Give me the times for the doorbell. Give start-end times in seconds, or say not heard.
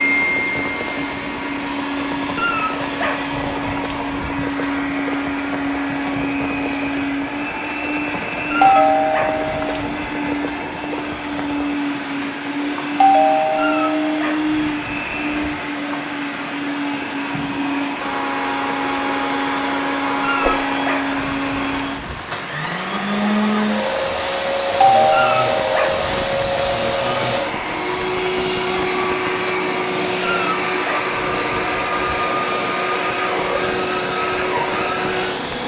8.6-9.8, 13.0-14.2, 24.8-25.8.